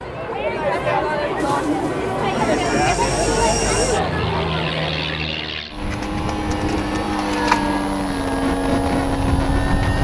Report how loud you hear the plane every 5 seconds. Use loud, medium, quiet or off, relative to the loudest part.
medium, loud.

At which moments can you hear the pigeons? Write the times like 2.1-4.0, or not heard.
1.4-3.0, 5.8-7.8.